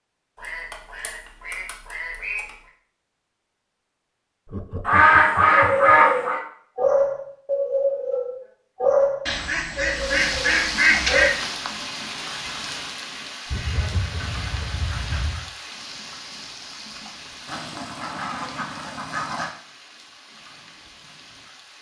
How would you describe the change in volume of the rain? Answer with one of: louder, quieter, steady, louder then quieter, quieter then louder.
quieter.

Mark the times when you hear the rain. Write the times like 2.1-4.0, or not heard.
9.9-21.7.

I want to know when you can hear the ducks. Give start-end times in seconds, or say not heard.
0.3-2.5, 4.8-6.4, 9.2-11.3, 13.5-15.4, 17.4-19.5.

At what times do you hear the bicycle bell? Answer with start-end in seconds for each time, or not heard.
not heard.